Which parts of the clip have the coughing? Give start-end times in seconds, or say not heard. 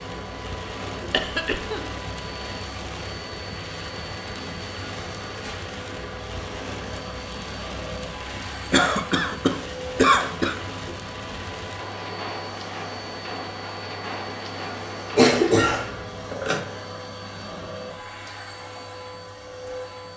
1.1-1.9, 8.7-10.6, 15.2-16.6.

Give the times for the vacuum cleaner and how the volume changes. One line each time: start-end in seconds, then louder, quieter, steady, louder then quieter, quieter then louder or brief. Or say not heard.
0.0-20.1 steady.